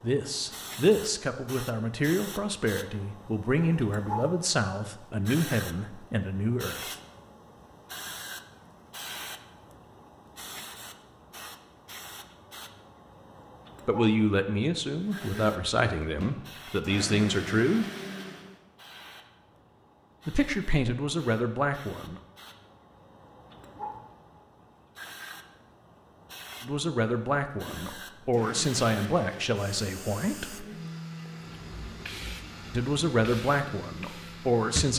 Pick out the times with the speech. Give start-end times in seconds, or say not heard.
0.0-7.0, 13.8-17.9, 20.2-22.2, 26.6-30.6, 32.7-34.9.